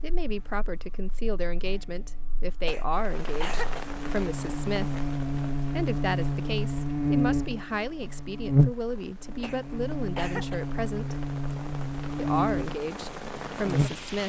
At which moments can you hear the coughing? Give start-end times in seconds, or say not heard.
2.6-3.9, 9.4-10.7.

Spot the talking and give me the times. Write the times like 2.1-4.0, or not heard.
0.0-5.0, 5.7-11.2, 12.2-14.2.